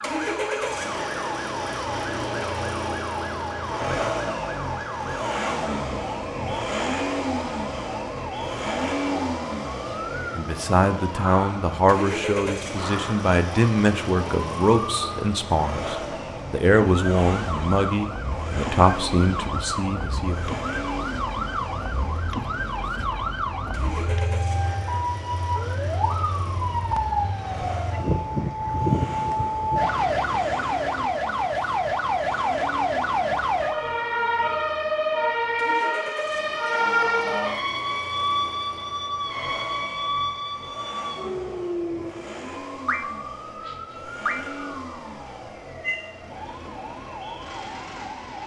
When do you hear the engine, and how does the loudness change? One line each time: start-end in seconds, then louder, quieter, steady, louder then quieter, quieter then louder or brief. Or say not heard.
0.0-48.4 quieter.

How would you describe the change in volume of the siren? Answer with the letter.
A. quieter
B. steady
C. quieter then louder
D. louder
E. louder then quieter
E.